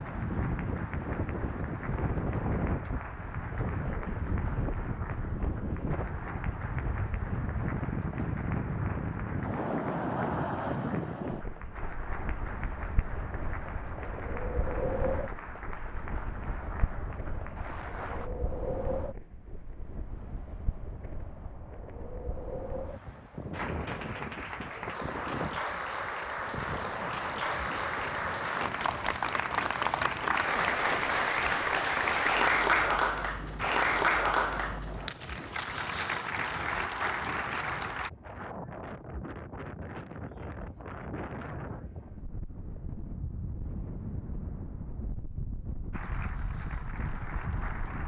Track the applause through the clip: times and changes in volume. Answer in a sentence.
The applause can be heard from 0.0 to 18.3 s, at a steady volume; from 23.5 to 38.1 s, getting louder then quieter; and briefly from 45.9 to 48.0 s.